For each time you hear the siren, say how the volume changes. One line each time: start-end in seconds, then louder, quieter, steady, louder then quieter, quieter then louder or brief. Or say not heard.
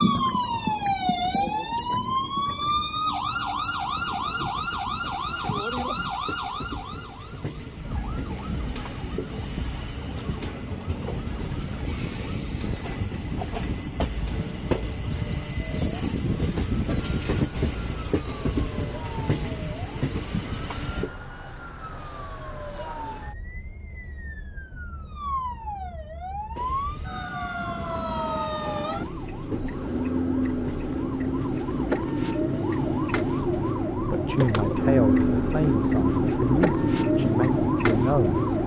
0.0-38.6 quieter then louder.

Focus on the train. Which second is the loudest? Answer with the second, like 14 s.
17 s.